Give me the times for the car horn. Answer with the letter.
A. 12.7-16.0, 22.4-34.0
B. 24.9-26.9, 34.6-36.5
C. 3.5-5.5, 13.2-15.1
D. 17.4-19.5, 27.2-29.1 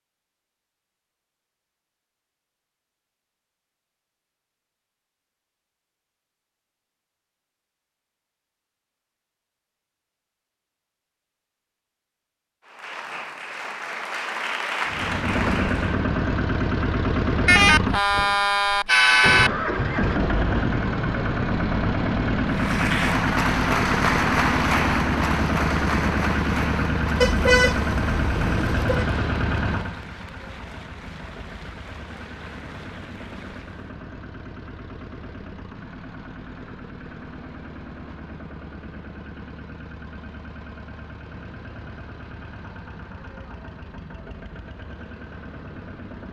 D.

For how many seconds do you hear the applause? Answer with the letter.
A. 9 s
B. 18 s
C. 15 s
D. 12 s
C.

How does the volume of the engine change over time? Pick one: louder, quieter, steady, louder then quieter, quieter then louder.
quieter.